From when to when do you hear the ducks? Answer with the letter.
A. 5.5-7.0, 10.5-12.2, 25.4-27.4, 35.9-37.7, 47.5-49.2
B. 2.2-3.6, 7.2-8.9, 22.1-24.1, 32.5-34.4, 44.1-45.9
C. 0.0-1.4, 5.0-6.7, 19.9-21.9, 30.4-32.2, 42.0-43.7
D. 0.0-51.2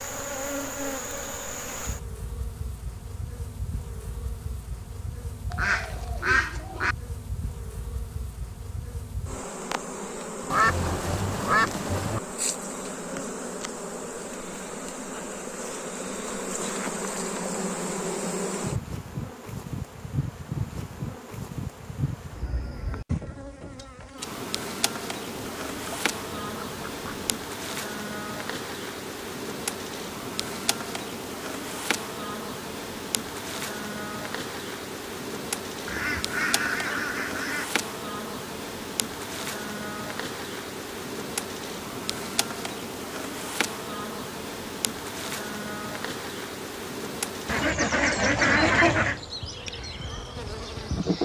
A.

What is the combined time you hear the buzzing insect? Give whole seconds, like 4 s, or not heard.
51 s.